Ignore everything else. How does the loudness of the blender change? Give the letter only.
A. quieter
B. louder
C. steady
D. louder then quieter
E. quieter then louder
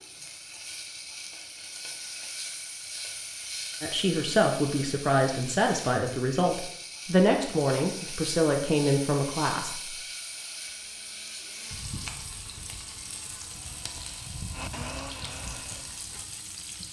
B.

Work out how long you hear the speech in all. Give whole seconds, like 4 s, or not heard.
6 s.